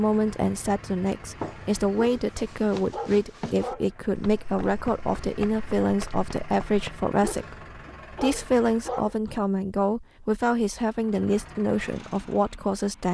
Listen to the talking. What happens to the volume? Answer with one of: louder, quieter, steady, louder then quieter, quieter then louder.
steady.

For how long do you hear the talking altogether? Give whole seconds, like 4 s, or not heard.
13 s.